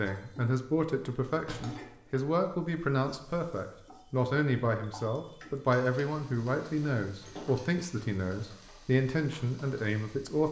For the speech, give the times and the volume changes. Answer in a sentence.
The speech can be heard from 0.0 to 10.4 s, at a steady volume.